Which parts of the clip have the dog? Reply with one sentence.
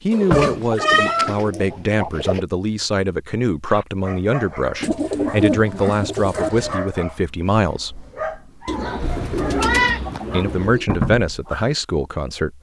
The dog can be heard from 3.6 to 11.7 s.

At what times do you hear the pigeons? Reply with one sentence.
You can hear the pigeons from 0.2 to 2.5 s, from 4.8 to 6.8 s and from 8.7 to 10.8 s.